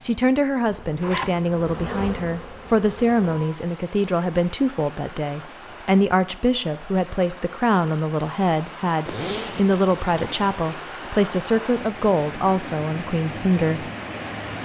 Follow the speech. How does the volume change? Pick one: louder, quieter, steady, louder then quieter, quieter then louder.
steady.